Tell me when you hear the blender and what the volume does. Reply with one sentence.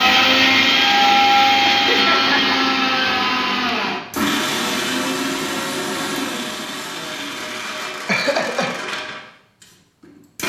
The blender can be heard from 0.0 to 10.4 s, getting quieter.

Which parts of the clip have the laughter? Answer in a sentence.
The laughter can be heard from 1.7 to 2.5 s and from 8.1 to 8.8 s.